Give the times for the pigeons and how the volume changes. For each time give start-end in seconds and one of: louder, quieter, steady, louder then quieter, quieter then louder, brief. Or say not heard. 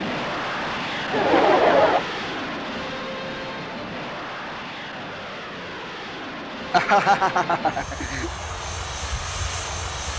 not heard.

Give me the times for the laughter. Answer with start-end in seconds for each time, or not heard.
1.1-2.0, 6.7-8.3.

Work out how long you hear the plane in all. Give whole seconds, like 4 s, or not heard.
10 s.